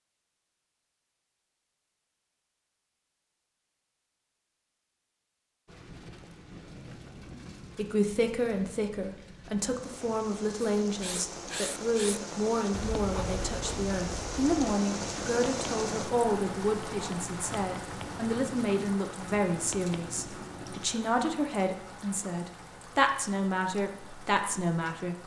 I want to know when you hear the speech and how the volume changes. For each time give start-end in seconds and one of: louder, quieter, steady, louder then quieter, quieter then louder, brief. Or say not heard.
7.8-25.2 steady.